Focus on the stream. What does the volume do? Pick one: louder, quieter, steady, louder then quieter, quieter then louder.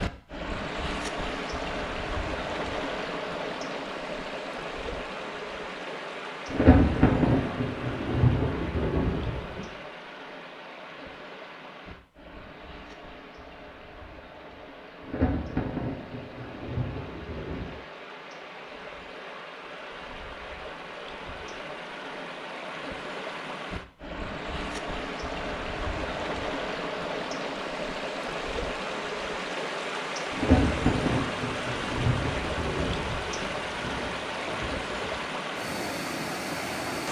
quieter then louder.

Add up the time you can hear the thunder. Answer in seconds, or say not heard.
11 s.